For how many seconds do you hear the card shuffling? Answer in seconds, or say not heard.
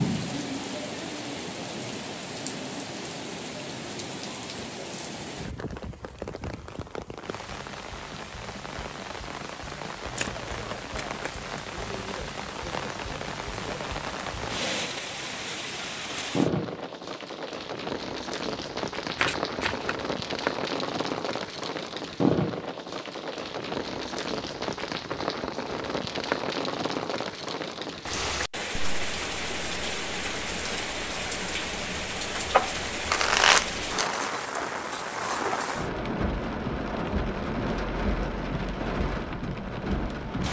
4 s.